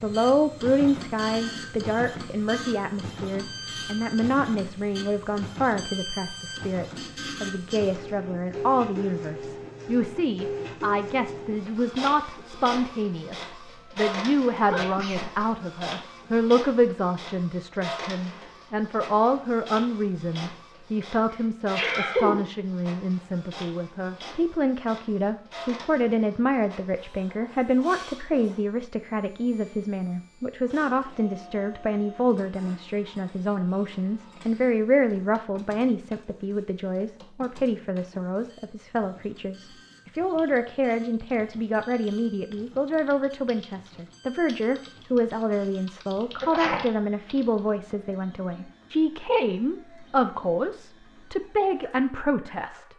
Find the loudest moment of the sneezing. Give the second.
22 s.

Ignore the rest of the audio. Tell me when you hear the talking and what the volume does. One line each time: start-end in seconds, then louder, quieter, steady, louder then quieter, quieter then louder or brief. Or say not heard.
0.0-52.9 steady.